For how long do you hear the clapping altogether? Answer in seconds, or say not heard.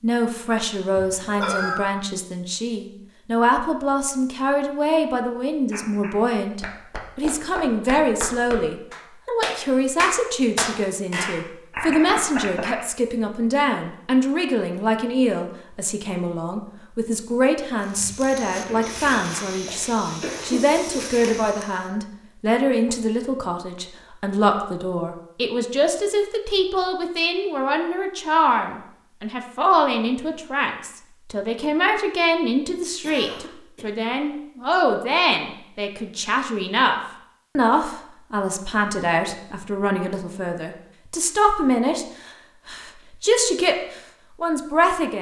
7 s.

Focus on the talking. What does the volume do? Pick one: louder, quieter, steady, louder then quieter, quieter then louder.
steady.